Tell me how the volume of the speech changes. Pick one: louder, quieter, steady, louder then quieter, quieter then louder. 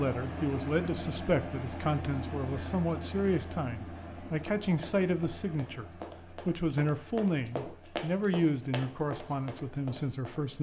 steady.